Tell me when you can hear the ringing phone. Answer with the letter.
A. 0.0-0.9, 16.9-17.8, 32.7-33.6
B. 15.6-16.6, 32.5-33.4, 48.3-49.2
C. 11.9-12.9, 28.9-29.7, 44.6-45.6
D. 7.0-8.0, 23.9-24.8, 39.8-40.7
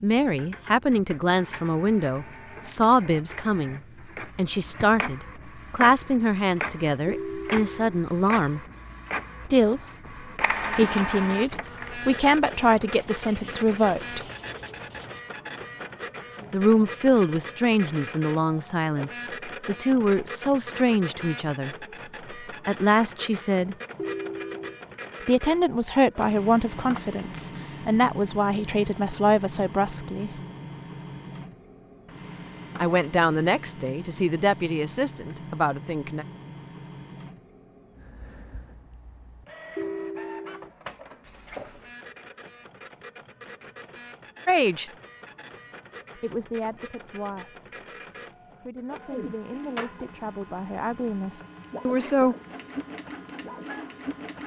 D.